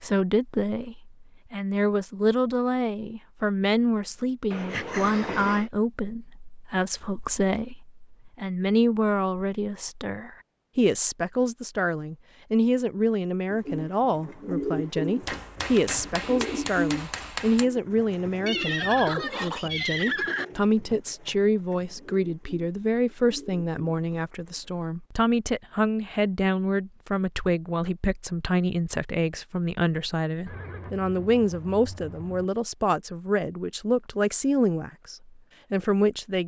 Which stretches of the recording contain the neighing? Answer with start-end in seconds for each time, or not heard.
4.5-5.7, 18.4-20.4, 30.4-32.5.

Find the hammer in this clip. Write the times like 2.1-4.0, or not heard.
15.2-17.6.